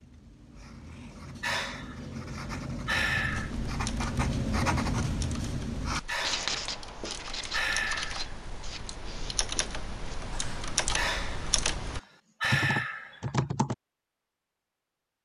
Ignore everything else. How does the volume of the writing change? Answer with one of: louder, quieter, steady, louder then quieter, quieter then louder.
louder then quieter.